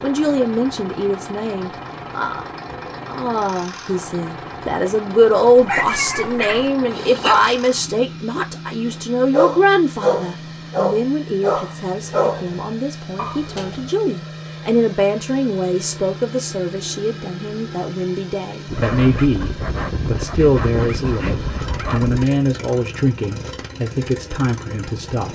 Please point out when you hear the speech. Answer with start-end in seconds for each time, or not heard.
0.0-25.3.